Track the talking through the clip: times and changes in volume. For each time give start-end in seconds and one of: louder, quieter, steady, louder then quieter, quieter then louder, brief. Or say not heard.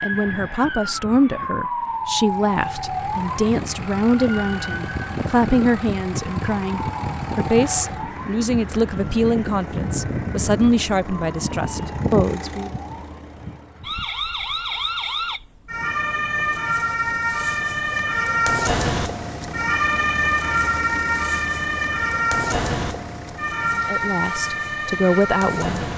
0.0-12.7 steady
23.8-25.9 brief.